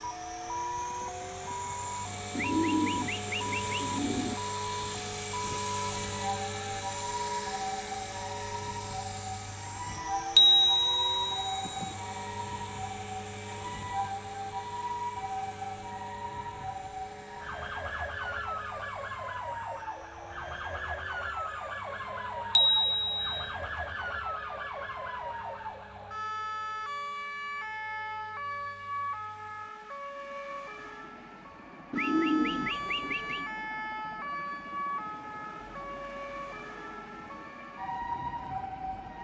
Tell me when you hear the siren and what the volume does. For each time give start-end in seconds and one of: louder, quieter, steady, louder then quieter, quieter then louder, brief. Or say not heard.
0.0-39.2 steady.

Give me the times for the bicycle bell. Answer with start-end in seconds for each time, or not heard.
10.3-11.9, 22.6-23.4.